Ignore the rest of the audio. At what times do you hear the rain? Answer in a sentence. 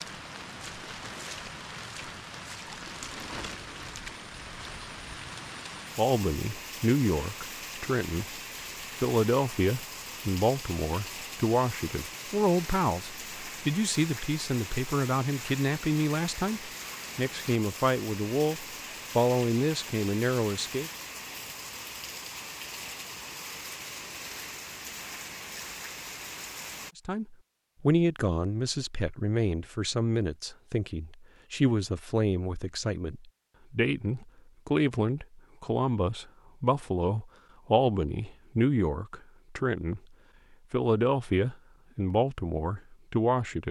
The rain can be heard from 0.0 to 26.9 s.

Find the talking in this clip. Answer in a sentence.
You can hear the talking from 6.0 to 8.2 s, from 9.0 to 20.9 s, from 26.9 to 40.0 s and from 40.7 to 43.6 s.